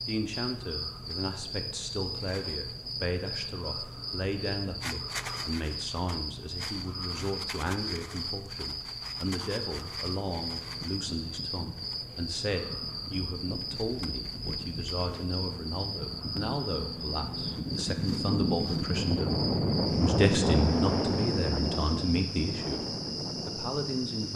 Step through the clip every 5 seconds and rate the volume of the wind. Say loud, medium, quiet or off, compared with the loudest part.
off, off, quiet, loud, loud.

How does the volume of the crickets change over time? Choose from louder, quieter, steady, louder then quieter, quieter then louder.
steady.